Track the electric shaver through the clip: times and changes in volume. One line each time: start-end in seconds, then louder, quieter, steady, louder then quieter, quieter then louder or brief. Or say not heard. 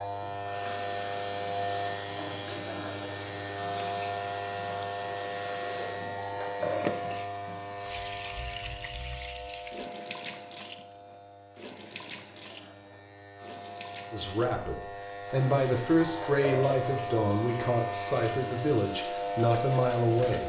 0.0-20.4 quieter then louder.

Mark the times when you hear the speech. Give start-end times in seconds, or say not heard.
14.1-20.4.